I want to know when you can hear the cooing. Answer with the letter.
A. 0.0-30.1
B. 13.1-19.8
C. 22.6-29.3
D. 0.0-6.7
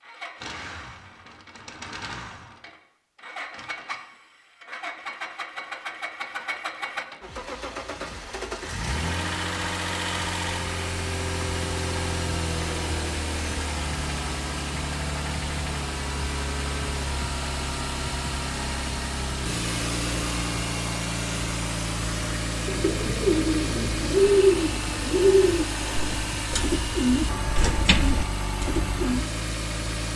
C.